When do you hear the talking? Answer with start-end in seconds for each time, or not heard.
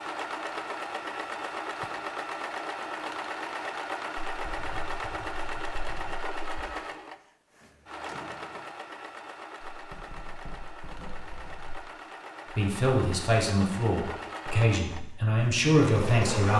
12.5-16.5.